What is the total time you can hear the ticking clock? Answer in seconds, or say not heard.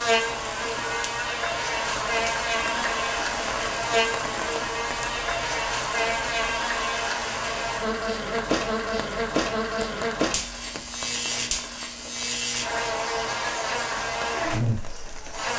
not heard.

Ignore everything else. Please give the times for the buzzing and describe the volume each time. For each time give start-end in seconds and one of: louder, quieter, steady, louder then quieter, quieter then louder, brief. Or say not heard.
0.0-15.5 steady.